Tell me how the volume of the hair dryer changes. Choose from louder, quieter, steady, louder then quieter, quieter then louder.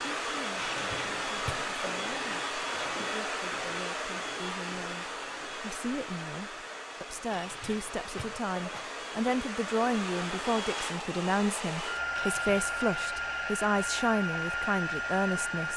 quieter then louder.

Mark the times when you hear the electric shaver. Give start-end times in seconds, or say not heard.
not heard.